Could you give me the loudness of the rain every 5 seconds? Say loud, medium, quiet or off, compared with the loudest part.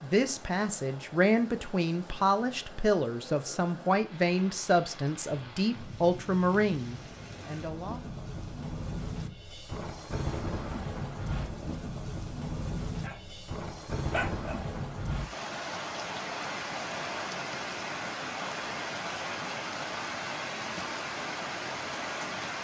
quiet, medium, loud, loud, loud.